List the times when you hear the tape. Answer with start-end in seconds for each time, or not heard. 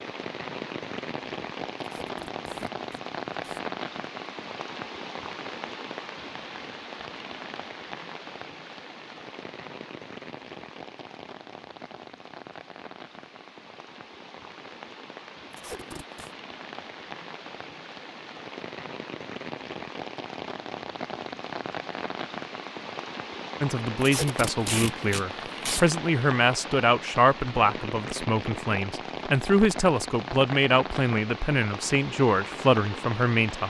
1.8-3.6, 15.5-16.4, 24.0-25.9.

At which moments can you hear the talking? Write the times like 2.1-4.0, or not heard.
23.6-33.6.